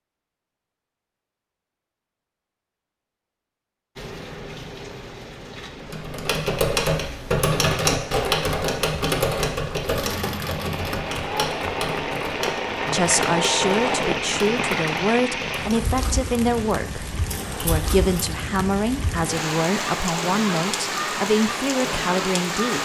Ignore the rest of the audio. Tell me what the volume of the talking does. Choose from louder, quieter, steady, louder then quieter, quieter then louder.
steady.